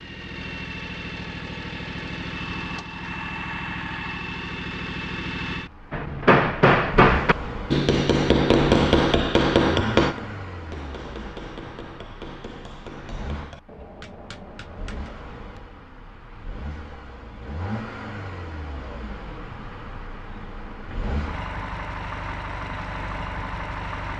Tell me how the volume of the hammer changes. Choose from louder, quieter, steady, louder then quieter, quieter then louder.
quieter.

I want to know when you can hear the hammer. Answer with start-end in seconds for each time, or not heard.
5.9-15.2.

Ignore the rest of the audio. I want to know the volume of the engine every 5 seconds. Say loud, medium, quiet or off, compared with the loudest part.
loud, loud, medium, medium, loud.